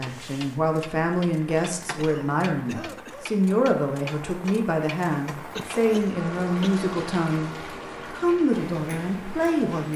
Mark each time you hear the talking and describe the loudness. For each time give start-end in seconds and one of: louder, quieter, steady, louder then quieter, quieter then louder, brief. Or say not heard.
0.0-9.9 steady.